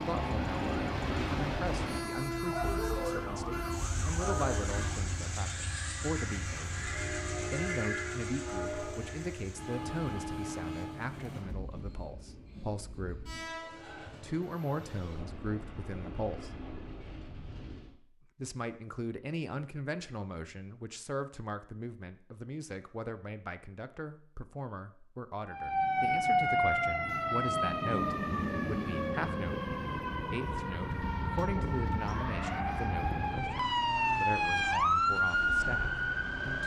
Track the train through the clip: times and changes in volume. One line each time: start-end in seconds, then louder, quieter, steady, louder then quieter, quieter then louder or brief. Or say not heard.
0.0-17.9 quieter.